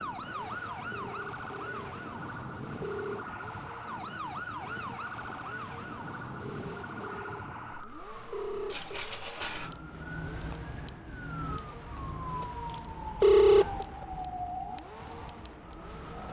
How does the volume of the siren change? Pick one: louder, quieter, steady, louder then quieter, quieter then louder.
steady.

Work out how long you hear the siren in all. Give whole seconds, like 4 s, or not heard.
16 s.